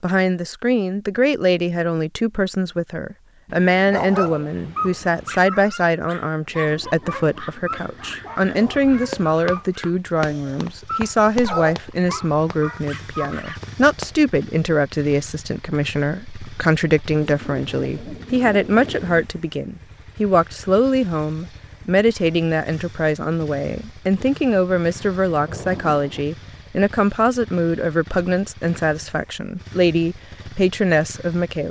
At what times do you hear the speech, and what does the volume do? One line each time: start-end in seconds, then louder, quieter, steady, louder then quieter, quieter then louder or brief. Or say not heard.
0.0-31.6 steady.